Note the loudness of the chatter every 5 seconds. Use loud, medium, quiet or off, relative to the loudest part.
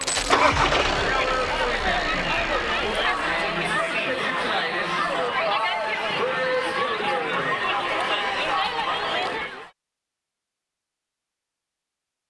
loud, loud, off.